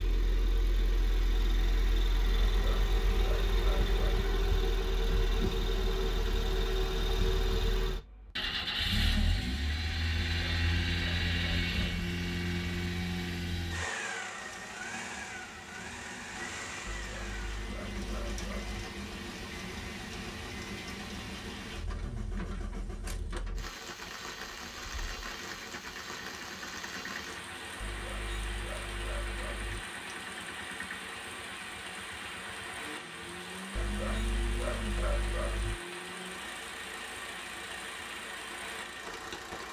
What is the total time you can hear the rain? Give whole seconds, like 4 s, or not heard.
25 s.